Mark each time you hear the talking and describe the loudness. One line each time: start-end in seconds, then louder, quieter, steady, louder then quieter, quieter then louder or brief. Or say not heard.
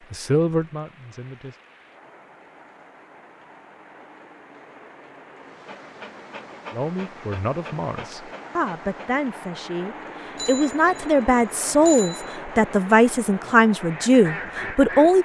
0.1-1.6 brief
6.7-15.2 louder.